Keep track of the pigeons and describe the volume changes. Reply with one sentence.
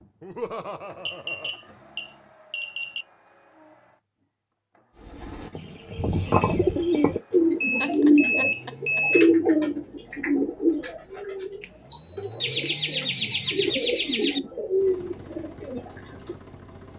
The loudness of the pigeons goes down, then up.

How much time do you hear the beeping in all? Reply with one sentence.
The beeping can be heard for 5 seconds in total.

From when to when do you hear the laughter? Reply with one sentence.
The laughter can be heard from 0.2 to 1.6 s, from 7.8 to 9.0 s and from 12.4 to 14.4 s.